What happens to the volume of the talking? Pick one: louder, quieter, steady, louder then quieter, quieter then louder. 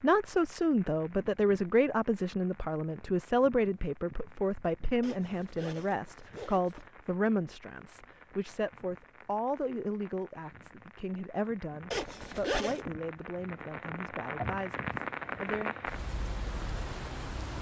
quieter.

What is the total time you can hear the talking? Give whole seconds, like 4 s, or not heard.
16 s.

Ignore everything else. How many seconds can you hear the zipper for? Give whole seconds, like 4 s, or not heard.
3 s.